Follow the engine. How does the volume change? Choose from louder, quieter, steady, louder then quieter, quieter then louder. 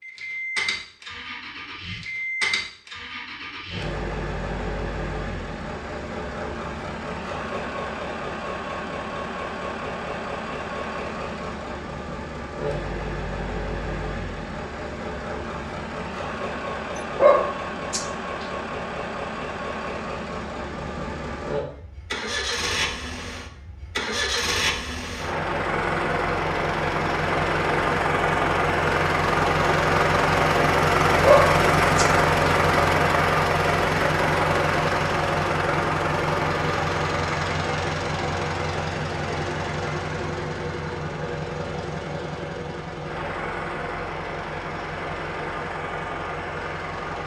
louder then quieter.